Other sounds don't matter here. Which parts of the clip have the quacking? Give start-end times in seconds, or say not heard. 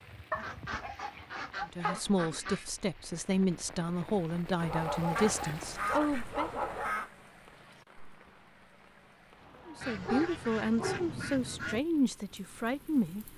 0.3-2.6, 5.2-7.1, 9.8-11.8.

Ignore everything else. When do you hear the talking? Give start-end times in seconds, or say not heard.
1.6-6.6, 9.7-13.3.